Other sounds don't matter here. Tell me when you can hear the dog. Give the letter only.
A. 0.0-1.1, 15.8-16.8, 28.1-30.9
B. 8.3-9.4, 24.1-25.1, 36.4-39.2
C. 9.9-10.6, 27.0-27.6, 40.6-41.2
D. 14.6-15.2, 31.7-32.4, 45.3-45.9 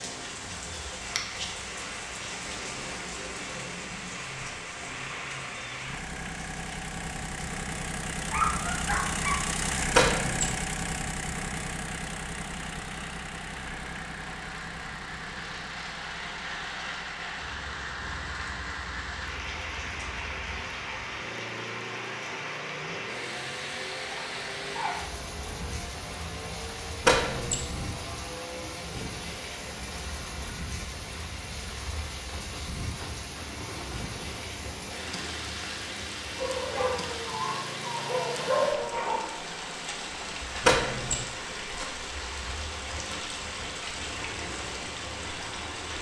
B.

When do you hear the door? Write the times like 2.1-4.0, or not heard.
9.9-10.6, 27.0-27.6, 40.6-41.2.